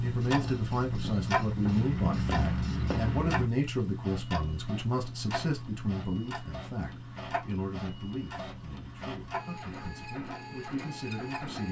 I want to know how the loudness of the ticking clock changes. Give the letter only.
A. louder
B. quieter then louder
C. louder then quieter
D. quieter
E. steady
D.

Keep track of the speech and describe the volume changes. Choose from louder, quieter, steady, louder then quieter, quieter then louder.
quieter.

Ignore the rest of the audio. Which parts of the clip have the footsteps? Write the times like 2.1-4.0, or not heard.
0.0-3.5.